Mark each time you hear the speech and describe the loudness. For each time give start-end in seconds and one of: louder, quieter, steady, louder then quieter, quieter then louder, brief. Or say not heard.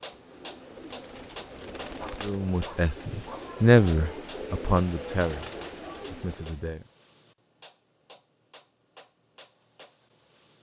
2.2-6.8 louder then quieter.